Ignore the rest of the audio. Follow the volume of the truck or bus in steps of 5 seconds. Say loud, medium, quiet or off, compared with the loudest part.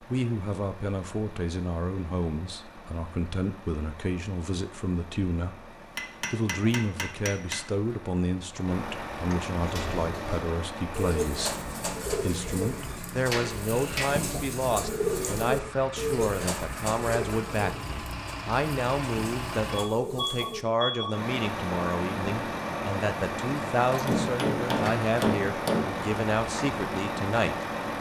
quiet, medium, medium, medium, loud, loud.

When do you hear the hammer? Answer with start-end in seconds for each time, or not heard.
6.0-7.6, 13.2-14.2, 24.1-26.0.